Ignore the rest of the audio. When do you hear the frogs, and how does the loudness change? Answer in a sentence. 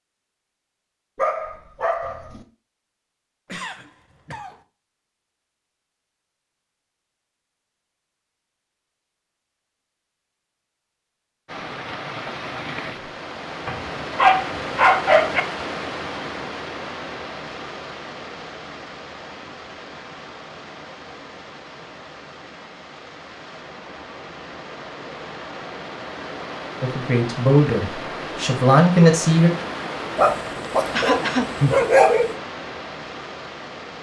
You can't hear the frogs here.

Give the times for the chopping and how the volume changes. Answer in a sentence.
The chopping can't be heard in this clip.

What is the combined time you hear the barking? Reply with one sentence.
You can hear the barking for 5 seconds altogether.